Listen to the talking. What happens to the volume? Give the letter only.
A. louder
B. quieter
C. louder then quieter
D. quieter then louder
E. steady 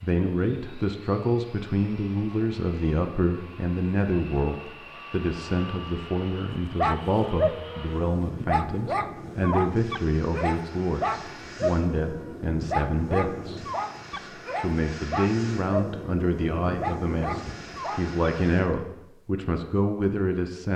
E.